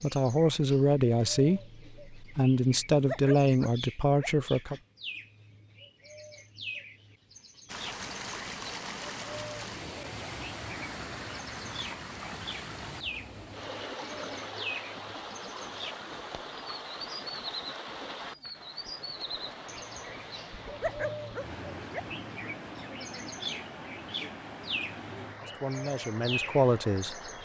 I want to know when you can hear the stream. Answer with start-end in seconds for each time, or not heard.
7.7-27.4.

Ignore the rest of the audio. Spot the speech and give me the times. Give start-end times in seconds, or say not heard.
0.0-4.8, 25.4-27.1.